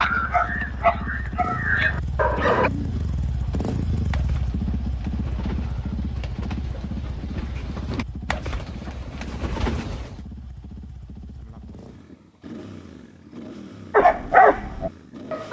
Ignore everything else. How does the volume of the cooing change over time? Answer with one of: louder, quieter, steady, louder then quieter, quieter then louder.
louder.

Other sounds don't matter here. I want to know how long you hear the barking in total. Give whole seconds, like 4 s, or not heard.
4 s.